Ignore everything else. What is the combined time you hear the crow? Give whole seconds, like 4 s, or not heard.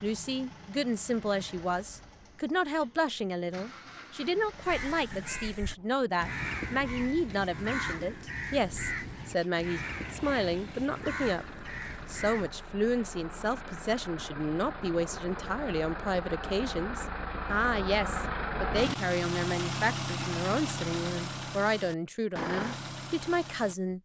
8 s.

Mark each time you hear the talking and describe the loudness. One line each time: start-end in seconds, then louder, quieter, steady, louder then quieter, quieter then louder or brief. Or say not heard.
0.0-24.0 steady.